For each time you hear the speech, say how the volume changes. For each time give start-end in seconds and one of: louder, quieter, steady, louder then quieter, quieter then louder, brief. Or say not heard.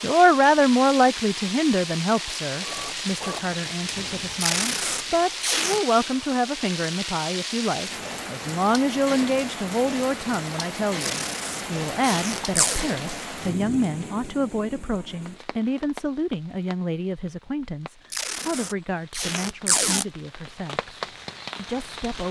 0.0-22.2 quieter.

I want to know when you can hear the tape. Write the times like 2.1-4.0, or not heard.
4.3-5.8, 11.0-12.8, 18.1-20.1.